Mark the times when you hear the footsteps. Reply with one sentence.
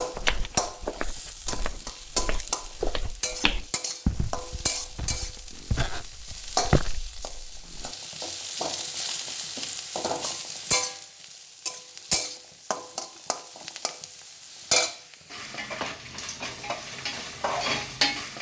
You can hear the footsteps from 0.0 to 8.0 s.